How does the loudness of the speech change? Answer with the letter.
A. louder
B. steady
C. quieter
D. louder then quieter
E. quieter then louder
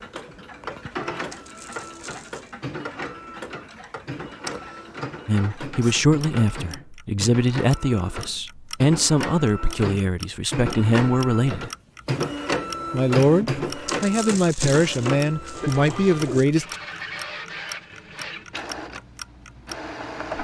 B.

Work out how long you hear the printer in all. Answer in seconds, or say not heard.
20 s.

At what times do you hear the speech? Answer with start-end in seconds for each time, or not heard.
5.2-11.7, 12.9-16.8.